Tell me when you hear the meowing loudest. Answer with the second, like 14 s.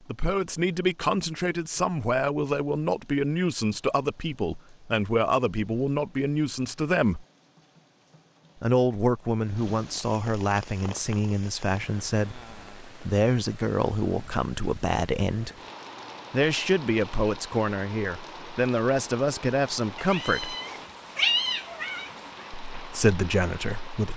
21 s.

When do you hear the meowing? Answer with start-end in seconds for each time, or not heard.
19.9-22.4.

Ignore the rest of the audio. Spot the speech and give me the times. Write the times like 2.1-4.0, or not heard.
0.1-7.2, 8.6-15.5, 16.3-20.6, 22.8-24.1.